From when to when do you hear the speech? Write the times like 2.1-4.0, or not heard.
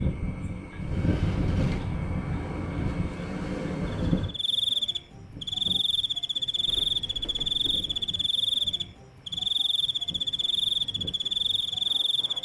not heard.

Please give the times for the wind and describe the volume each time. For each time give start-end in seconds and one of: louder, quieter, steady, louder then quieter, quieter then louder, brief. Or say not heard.
0.0-12.3 quieter.